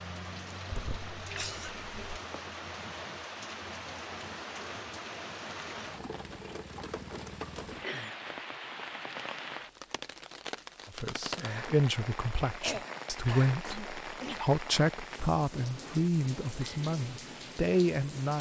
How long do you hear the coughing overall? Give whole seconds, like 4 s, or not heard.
4 s.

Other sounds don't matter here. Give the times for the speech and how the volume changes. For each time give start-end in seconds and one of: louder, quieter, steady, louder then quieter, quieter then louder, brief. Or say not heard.
10.9-18.3 steady.